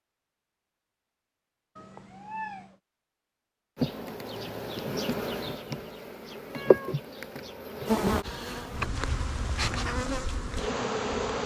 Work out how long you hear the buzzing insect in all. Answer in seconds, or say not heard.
8 s.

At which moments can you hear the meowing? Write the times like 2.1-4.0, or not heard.
1.8-2.8, 6.5-7.0.